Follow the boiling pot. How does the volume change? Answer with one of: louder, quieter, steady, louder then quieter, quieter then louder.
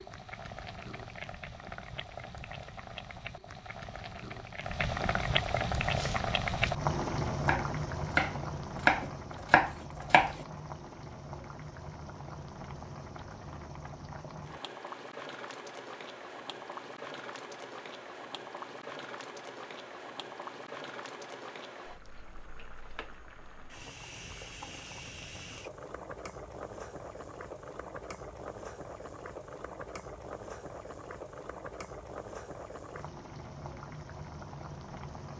quieter.